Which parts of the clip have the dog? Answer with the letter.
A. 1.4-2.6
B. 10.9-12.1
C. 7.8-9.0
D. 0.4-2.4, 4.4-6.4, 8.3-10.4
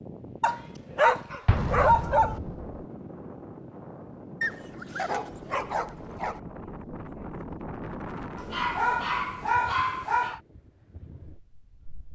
D.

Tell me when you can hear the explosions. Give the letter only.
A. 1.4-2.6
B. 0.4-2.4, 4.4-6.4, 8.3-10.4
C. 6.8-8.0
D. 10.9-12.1
A.